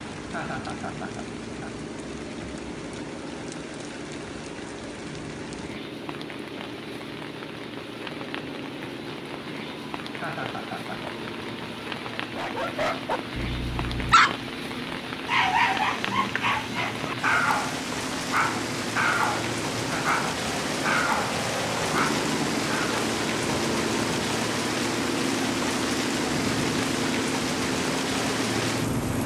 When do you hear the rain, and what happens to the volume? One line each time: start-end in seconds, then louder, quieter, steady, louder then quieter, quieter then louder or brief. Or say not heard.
0.0-29.2 louder.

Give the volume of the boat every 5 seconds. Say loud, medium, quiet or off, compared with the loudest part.
medium, medium, medium, medium, loud, loud.